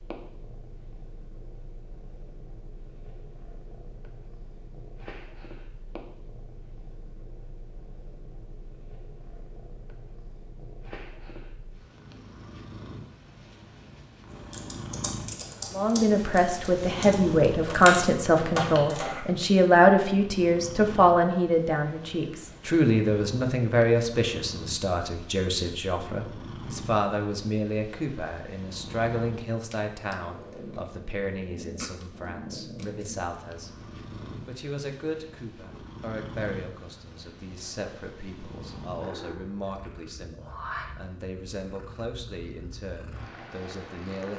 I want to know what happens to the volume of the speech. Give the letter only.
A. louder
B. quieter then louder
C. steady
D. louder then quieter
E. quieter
E.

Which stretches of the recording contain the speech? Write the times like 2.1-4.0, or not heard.
15.7-44.3.